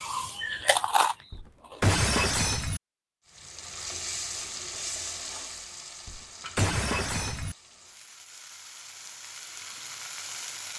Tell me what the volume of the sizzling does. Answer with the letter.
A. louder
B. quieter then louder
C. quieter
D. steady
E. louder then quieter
B.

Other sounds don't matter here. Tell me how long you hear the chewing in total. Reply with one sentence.
The chewing can be heard for 2 seconds in total.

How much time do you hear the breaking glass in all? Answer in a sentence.
You can hear the breaking glass for 3 seconds altogether.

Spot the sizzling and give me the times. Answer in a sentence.
You can hear the sizzling from 3.2 to 10.7 s.